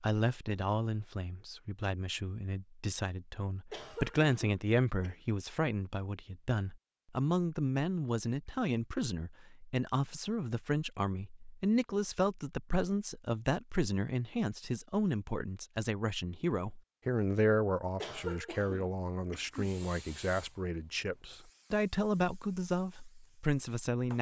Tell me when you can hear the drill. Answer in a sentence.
The drill can't be heard in this clip.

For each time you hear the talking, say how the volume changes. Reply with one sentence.
The talking can be heard from 0.0 to 24.1 s, at a steady volume.